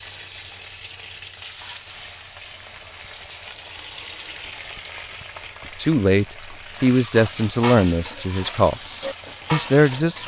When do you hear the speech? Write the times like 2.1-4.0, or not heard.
5.8-10.2.